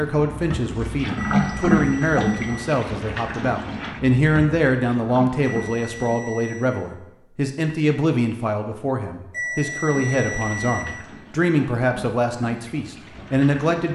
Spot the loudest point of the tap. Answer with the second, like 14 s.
2 s.